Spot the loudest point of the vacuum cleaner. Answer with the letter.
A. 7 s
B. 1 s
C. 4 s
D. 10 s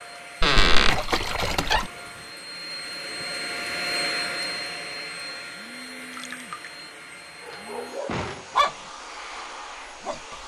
C.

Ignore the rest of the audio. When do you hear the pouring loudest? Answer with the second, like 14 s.
1 s.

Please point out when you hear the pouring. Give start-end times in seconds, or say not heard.
0.4-1.9, 6.1-6.7.